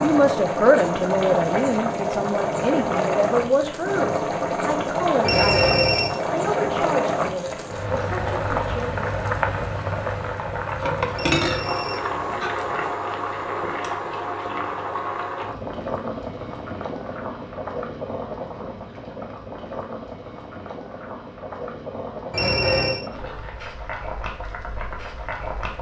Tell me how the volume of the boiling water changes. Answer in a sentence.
The loudness of the boiling water goes down.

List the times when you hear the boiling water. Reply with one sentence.
You can hear the boiling water from 0.0 to 25.7 s.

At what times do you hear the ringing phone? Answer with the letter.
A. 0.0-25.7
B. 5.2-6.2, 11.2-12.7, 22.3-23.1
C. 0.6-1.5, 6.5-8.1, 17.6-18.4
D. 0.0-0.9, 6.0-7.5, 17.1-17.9
B.